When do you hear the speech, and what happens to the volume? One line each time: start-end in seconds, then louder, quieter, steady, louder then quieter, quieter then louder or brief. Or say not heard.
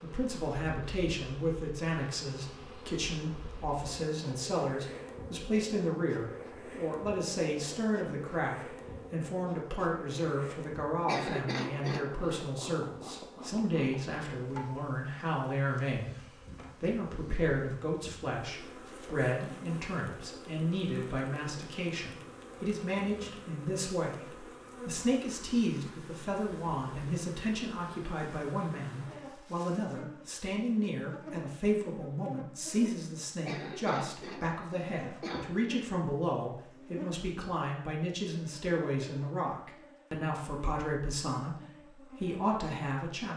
0.0-43.3 steady.